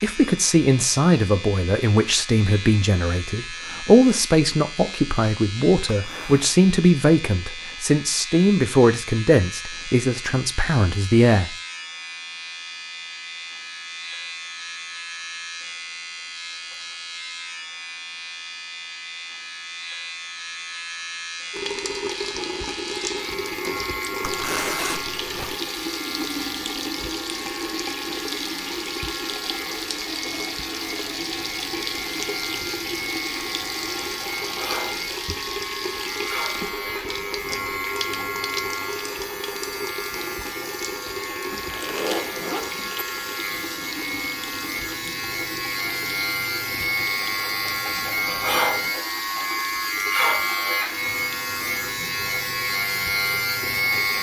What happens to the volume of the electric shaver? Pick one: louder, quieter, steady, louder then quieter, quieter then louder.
louder.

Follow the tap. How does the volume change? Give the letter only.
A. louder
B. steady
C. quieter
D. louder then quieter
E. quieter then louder
C.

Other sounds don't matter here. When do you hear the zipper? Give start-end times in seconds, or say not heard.
5.8-6.5, 24.2-25.6, 41.5-43.0.